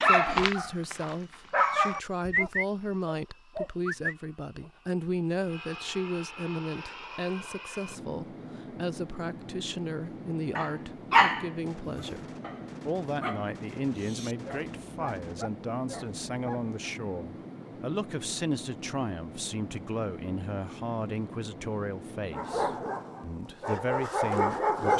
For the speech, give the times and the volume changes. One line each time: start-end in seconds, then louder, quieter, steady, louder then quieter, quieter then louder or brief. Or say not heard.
0.0-24.9 steady.